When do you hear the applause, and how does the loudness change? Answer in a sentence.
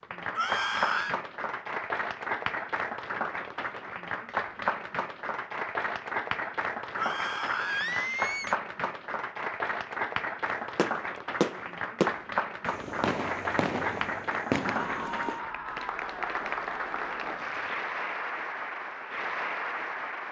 The applause can be heard from 0.0 to 20.2 s, at a steady volume.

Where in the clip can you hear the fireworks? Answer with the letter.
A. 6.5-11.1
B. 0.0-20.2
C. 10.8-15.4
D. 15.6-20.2
C.